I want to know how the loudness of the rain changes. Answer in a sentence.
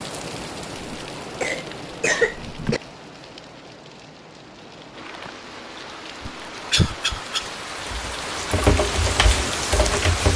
The loudness of the rain goes down, then up.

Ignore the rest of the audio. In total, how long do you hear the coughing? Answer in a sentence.
The coughing can be heard for 3 seconds in total.